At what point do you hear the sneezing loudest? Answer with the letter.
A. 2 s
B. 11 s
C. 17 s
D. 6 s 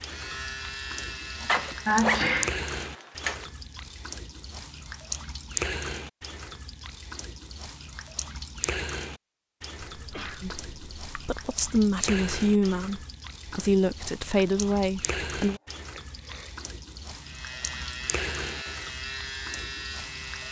A.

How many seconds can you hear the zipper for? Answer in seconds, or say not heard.
2 s.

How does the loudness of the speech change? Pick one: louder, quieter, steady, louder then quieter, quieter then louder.
louder.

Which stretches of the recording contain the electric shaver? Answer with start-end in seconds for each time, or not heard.
0.0-2.0, 17.1-20.4.